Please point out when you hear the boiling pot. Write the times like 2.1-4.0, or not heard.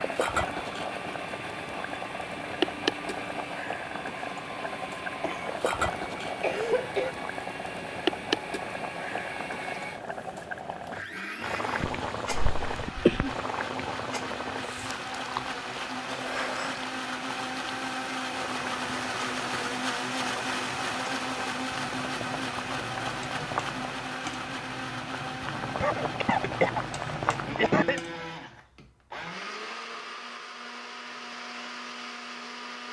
0.0-28.1.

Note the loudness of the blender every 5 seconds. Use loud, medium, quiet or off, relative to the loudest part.
medium, medium, medium, loud, loud, medium, medium.